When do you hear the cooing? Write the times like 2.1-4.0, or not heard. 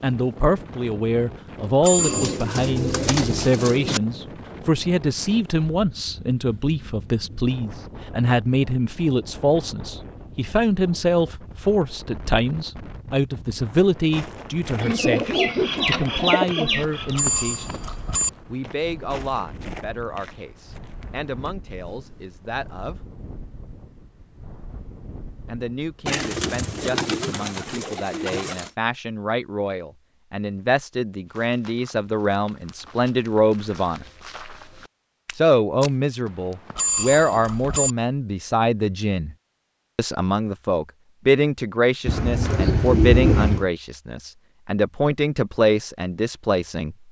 1.9-4.0, 14.8-17.2, 26.1-28.7, 42.0-43.7.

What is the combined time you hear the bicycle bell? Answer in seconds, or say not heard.
3 s.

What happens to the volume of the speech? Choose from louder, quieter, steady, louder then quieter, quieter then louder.
quieter then louder.